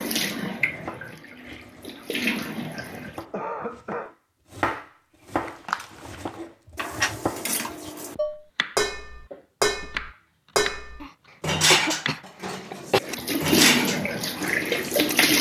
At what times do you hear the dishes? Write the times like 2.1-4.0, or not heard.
5.3-15.3.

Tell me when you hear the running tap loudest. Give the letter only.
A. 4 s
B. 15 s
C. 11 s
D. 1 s
B.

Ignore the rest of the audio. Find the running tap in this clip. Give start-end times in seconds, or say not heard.
0.0-3.2, 13.0-15.3.